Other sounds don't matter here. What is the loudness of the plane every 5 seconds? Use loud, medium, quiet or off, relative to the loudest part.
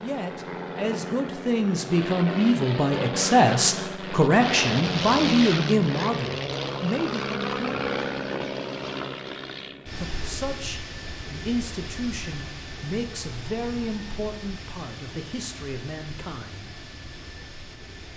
loud, loud, medium, quiet.